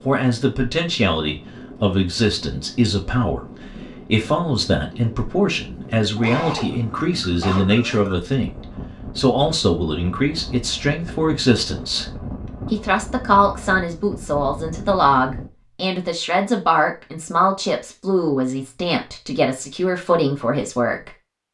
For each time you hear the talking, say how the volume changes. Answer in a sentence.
The talking can be heard from 0.0 to 12.1 s, at a steady volume; and from 12.7 to 21.1 s, at a steady volume.